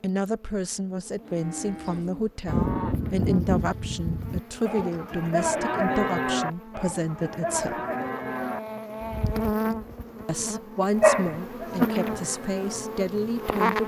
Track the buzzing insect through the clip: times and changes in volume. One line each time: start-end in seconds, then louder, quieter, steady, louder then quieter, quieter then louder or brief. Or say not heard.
0.1-13.8 louder.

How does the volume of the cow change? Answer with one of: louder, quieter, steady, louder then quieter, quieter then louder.
quieter.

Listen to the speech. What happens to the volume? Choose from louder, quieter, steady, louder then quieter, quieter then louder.
steady.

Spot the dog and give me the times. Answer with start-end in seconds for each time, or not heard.
11.0-11.8.